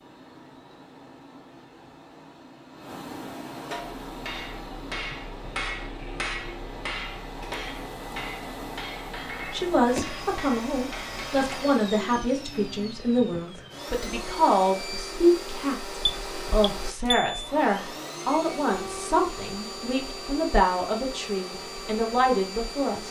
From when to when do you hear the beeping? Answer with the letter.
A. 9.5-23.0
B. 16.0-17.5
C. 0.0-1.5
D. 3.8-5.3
B.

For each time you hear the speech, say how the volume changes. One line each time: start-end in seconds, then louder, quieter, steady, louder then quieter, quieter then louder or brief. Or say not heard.
9.5-23.0 steady.